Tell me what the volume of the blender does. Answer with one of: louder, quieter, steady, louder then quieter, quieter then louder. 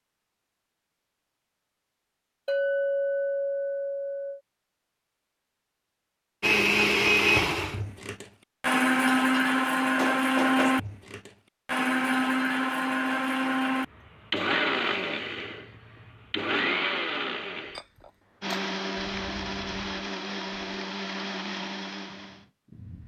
quieter.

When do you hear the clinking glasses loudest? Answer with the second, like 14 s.
3 s.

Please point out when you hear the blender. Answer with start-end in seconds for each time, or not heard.
6.4-23.0.